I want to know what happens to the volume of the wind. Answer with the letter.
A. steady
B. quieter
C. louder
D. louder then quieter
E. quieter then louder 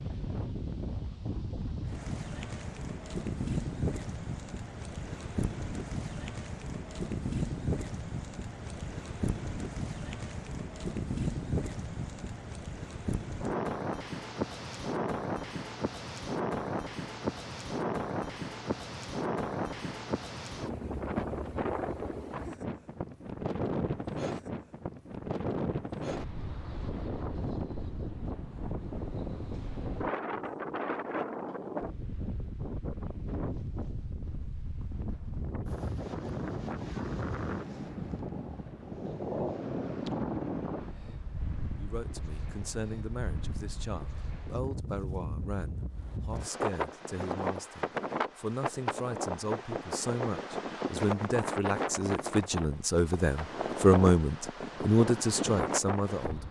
A.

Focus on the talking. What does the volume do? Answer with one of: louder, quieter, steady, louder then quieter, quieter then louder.
louder.